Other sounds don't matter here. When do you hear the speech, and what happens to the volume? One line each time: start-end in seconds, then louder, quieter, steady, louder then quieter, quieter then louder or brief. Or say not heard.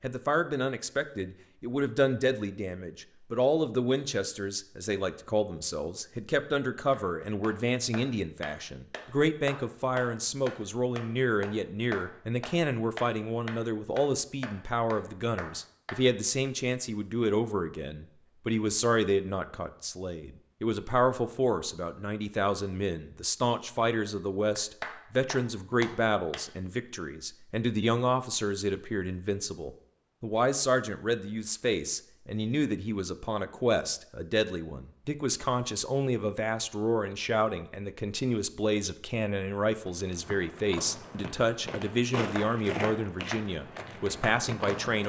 0.0-45.0 steady.